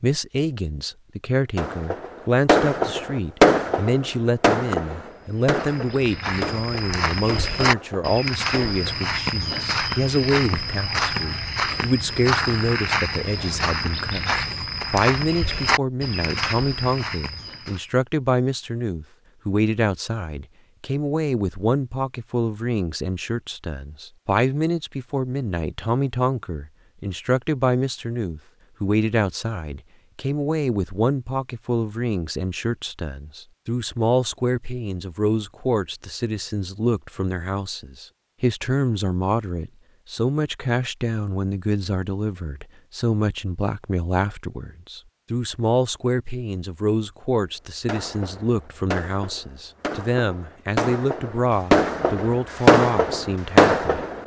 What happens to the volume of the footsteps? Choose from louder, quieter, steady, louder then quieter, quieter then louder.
steady.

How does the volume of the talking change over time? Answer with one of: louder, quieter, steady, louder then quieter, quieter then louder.
steady.